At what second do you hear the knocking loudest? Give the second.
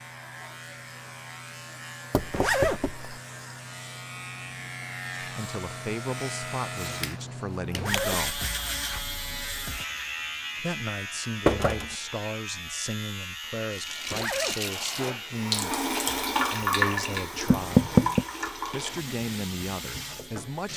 18 s.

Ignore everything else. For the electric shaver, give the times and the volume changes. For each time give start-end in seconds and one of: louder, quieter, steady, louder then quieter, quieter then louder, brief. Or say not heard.
0.0-20.7 louder then quieter.